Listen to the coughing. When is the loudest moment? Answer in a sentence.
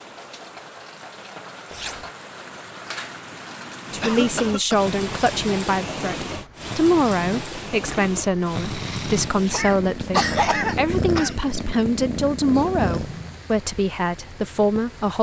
The loudest moment of the coughing is at 10 seconds.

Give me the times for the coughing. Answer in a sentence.
The coughing can be heard from 4.0 to 5.0 s and from 9.5 to 11.3 s.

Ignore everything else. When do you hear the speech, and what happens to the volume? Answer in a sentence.
The speech can be heard from 3.9 to 15.1 s, at a steady volume.